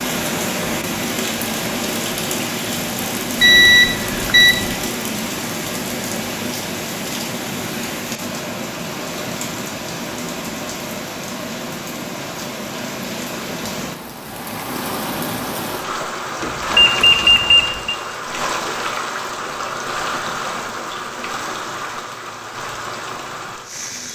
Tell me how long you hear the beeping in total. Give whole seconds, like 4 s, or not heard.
3 s.